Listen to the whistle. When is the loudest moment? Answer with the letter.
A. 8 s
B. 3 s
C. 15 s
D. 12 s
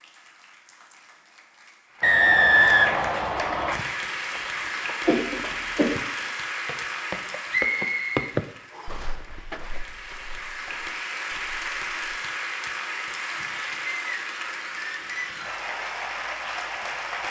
B.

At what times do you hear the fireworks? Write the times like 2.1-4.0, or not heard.
not heard.